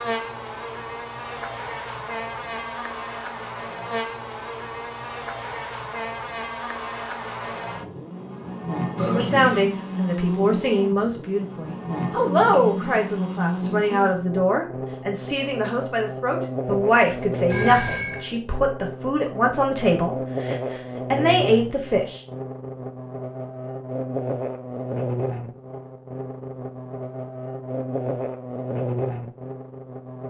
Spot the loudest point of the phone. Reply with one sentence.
The loudest moment of the phone is at 18 seconds.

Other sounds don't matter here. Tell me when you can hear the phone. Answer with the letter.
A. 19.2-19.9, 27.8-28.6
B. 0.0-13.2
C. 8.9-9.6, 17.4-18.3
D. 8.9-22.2
C.